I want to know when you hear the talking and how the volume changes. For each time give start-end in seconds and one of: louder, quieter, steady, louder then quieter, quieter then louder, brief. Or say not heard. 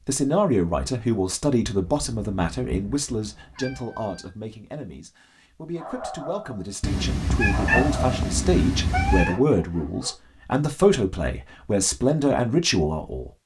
0.1-13.4 quieter then louder.